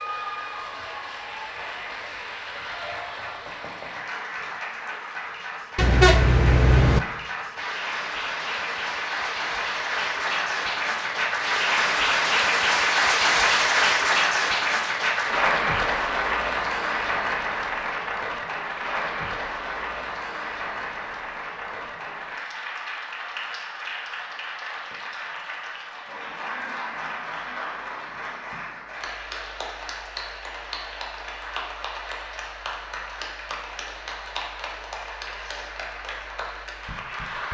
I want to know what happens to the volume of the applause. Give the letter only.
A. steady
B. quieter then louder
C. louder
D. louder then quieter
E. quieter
D.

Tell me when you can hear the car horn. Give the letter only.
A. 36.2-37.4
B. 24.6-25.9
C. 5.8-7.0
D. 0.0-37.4
C.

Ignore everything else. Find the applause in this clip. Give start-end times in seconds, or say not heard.
0.0-37.4.